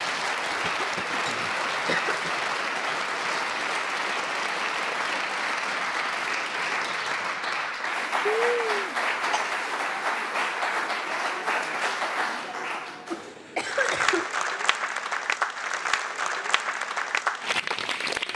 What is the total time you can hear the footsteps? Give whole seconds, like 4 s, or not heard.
not heard.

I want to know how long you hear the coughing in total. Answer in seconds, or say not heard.
4 s.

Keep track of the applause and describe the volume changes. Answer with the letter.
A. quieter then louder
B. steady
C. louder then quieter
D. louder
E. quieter
B.